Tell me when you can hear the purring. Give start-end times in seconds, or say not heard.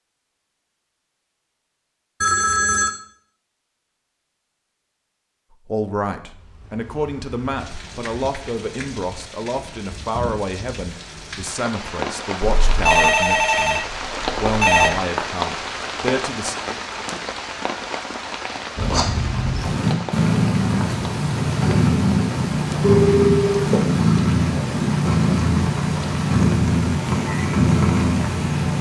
18.8-28.7.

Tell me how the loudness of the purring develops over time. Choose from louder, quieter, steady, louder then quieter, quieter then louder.
steady.